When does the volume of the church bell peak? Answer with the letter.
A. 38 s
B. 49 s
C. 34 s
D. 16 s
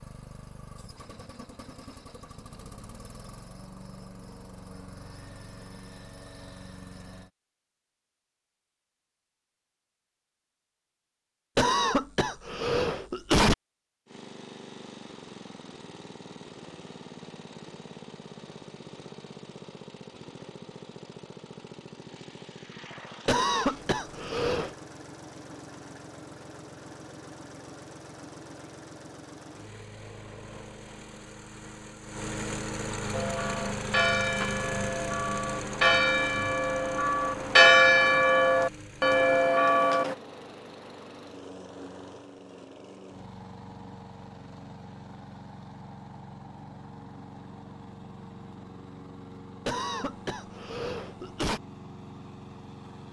A.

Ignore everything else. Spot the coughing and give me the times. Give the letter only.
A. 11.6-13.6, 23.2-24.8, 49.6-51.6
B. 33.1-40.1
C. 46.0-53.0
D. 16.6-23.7
A.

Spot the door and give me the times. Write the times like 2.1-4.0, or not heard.
not heard.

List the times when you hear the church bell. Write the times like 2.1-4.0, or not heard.
33.1-40.1.